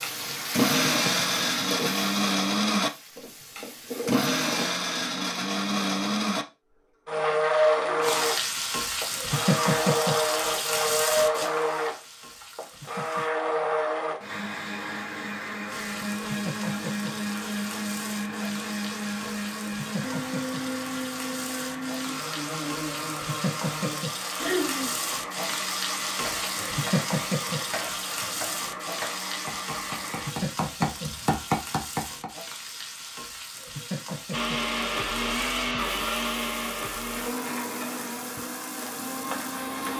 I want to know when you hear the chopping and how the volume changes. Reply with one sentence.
The chopping can be heard from 26.2 to 32.3 s, getting louder.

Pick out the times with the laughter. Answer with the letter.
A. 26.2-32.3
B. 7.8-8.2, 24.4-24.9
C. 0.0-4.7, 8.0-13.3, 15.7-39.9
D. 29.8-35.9
B.